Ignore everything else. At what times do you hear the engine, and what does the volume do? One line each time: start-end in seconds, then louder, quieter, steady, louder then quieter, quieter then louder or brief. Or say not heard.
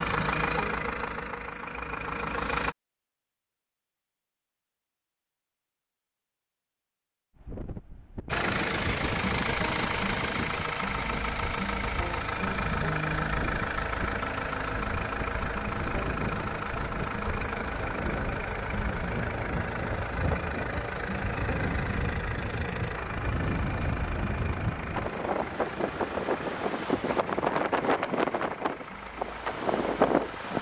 0.0-2.8 brief
8.3-30.5 quieter.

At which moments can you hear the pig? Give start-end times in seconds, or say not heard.
not heard.